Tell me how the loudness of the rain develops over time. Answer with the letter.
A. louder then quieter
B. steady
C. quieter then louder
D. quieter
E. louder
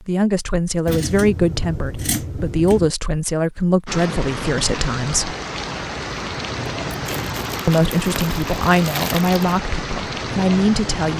B.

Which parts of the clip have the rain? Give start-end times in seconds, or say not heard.
3.9-11.1.